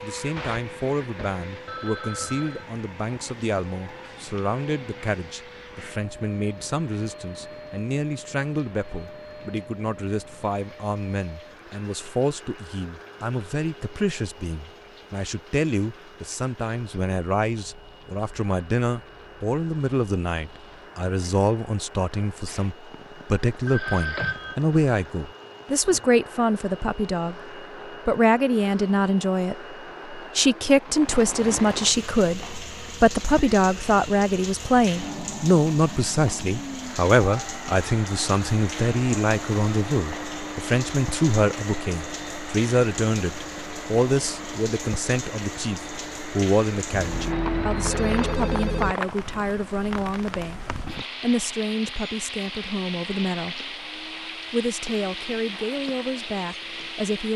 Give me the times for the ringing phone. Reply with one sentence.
The ringing phone can be heard from 1.6 to 2.6 s, from 23.6 to 24.6 s and from 46.9 to 49.0 s.